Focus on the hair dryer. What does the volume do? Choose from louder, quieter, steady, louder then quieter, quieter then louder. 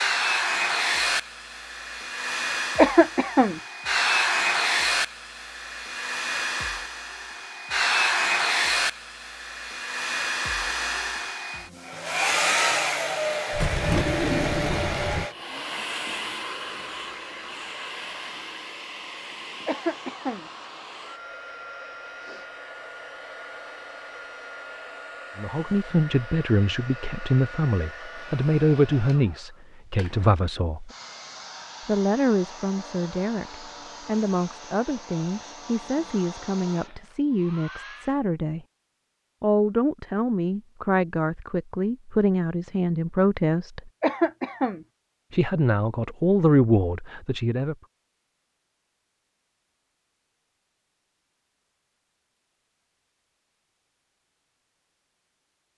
quieter.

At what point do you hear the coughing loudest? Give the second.
3 s.